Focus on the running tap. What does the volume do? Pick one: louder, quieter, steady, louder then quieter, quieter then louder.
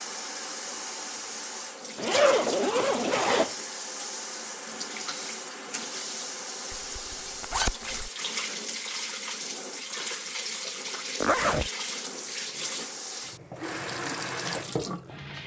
steady.